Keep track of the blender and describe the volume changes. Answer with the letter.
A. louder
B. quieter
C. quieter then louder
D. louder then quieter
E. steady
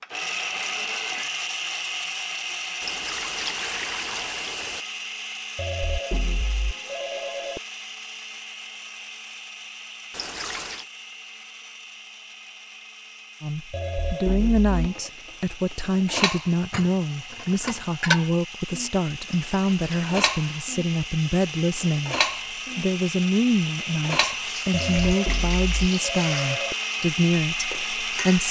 C.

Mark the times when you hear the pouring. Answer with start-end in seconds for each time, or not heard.
2.8-4.8, 10.1-10.8, 19.2-20.8.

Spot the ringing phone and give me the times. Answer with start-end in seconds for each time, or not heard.
5.5-7.6, 13.7-15.1, 24.7-26.8.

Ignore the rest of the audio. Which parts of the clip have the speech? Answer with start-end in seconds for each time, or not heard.
13.4-22.1, 22.8-28.4.